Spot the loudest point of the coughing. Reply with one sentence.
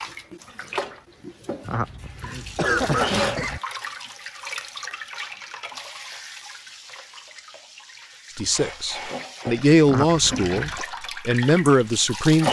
The loudest moment of the coughing is at 3 seconds.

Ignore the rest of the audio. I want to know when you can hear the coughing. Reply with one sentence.
You can hear the coughing from 1.6 to 3.6 s and from 9.8 to 10.8 s.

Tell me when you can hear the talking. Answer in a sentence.
The talking can be heard from 8.3 to 12.4 s.